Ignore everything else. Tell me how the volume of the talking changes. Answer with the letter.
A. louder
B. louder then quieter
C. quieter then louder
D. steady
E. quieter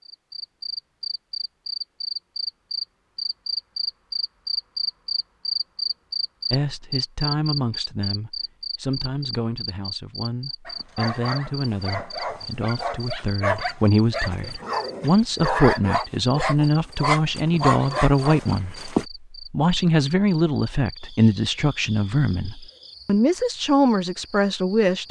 A.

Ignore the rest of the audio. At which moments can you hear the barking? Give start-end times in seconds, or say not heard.
10.7-19.1.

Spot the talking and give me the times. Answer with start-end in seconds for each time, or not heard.
6.5-25.0.